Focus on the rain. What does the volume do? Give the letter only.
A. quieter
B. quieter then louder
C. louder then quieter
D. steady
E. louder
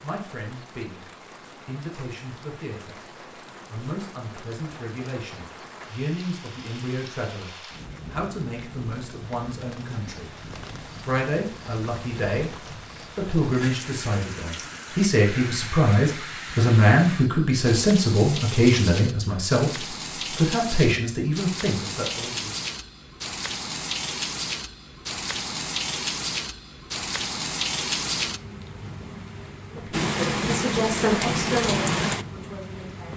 E.